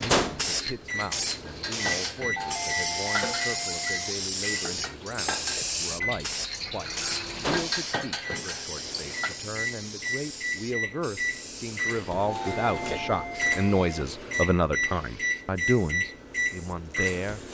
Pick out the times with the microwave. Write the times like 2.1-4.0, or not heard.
0.0-17.4.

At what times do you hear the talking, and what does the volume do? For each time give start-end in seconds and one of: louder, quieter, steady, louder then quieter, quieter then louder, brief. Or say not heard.
0.0-17.4 louder.